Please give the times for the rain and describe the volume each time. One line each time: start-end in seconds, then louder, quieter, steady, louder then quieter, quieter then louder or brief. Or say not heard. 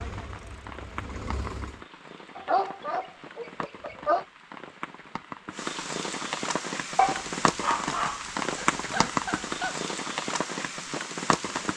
0.0-11.7 louder.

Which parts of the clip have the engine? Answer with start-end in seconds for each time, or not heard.
0.0-1.9.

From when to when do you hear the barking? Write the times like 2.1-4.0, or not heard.
2.4-4.2, 7.0-9.8.